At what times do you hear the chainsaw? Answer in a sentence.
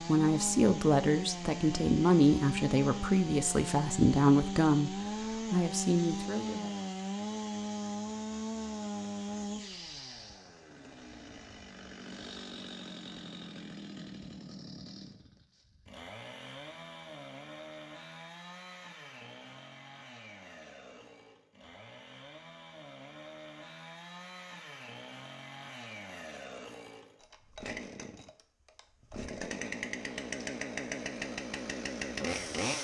You can hear the chainsaw from 0.0 to 32.7 s.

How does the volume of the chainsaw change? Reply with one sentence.
The volume of the chainsaw goes down, then up.